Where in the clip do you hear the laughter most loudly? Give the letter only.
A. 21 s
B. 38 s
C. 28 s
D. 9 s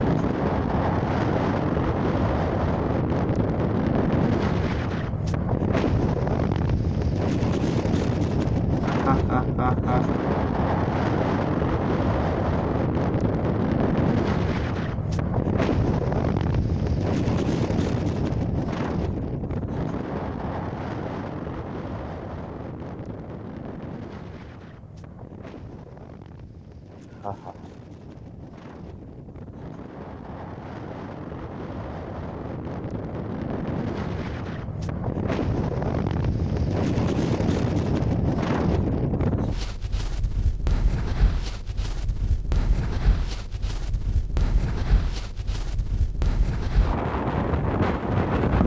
D.